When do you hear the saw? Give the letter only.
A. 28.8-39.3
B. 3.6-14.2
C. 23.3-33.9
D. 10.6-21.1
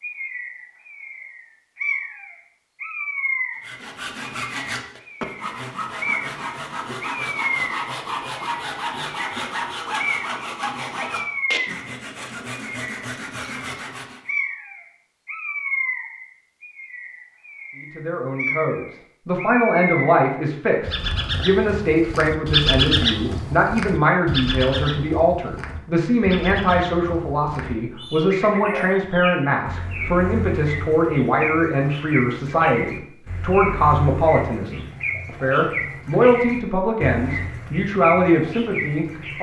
B.